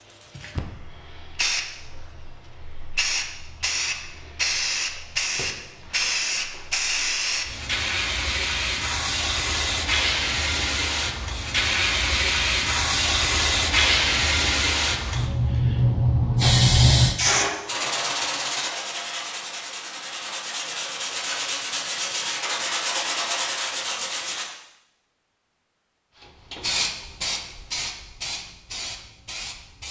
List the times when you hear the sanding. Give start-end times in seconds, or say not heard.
17.2-24.4.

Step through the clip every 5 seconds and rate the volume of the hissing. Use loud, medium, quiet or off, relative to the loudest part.
medium, medium, loud, loud, off, medium.